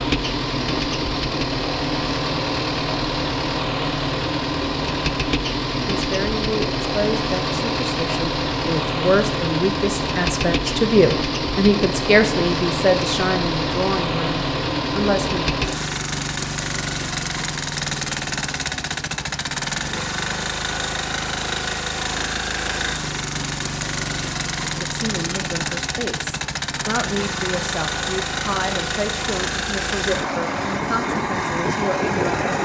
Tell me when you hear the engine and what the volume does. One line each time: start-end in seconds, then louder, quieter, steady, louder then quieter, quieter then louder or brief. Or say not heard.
0.0-32.5 steady.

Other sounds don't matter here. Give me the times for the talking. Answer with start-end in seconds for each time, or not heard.
5.8-15.4, 24.8-32.5.